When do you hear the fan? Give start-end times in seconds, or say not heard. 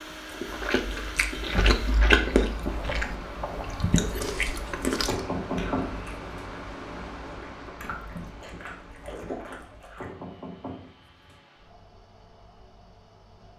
0.0-13.5.